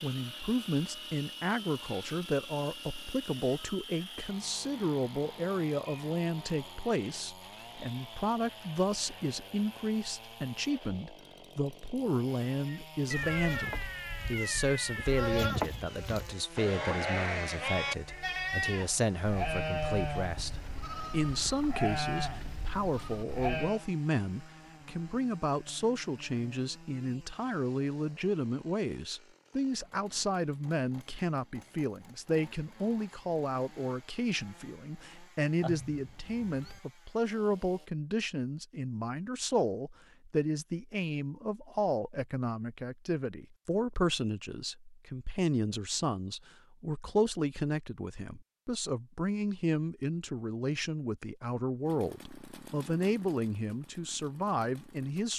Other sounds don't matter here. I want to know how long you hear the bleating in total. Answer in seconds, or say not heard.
11 s.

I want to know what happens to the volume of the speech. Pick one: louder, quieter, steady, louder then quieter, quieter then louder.
steady.